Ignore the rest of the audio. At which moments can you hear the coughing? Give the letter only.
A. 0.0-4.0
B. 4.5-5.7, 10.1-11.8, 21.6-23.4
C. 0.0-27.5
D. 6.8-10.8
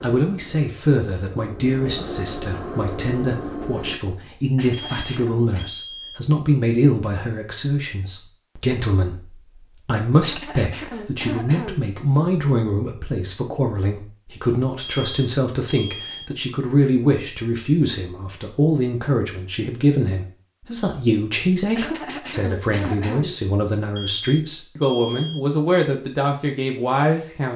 B.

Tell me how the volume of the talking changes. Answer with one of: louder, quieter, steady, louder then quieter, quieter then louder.
steady.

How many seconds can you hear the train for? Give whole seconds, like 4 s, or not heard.
4 s.